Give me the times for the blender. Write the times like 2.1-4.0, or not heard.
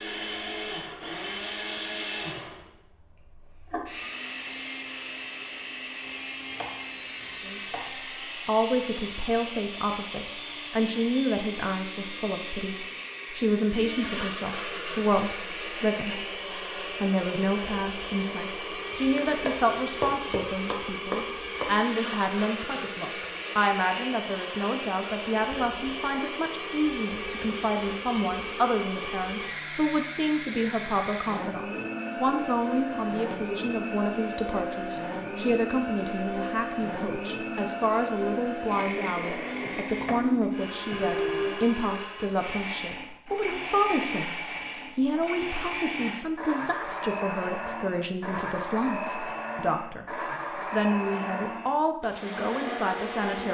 0.0-53.4.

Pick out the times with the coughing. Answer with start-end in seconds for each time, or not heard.
not heard.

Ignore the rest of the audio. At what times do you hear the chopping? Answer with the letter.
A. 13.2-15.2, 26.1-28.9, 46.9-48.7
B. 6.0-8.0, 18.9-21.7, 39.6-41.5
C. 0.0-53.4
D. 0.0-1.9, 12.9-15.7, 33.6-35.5
B.